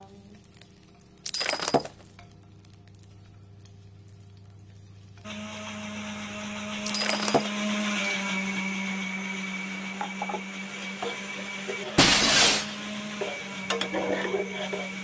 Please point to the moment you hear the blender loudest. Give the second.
8 s.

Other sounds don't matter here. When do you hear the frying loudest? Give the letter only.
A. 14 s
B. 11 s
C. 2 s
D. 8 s
A.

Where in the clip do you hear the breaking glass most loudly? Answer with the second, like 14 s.
12 s.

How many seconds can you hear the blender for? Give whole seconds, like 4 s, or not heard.
10 s.